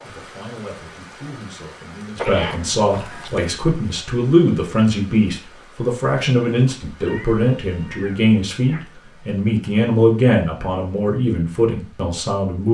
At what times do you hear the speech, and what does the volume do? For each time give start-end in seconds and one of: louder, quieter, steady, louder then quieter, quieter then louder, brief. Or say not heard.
0.0-12.6 louder.